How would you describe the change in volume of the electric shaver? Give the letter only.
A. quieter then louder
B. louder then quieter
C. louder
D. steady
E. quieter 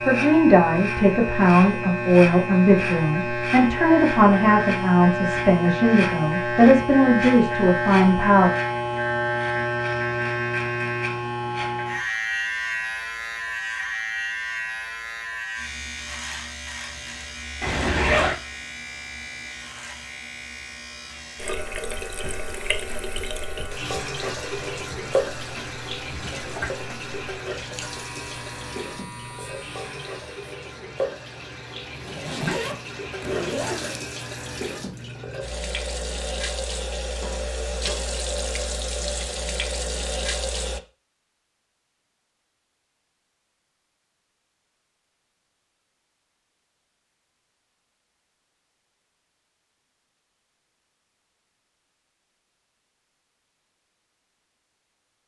E.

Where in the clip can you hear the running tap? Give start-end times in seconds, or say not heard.
21.4-40.8.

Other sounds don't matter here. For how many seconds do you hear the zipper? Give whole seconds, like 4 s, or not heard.
3 s.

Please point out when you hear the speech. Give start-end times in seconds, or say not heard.
0.0-8.5.